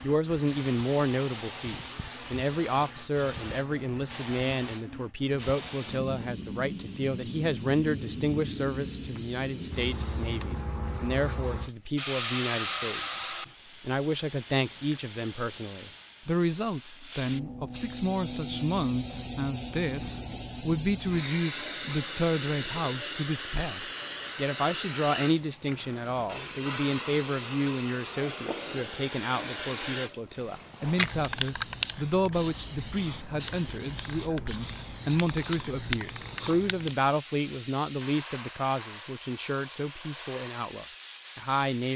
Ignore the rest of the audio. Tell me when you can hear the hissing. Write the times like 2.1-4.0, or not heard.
0.0-41.9.